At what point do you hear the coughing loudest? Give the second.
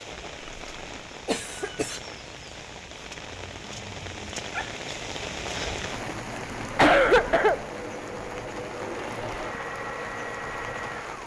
7 s.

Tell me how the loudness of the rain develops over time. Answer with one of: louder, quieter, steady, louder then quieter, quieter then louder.
louder then quieter.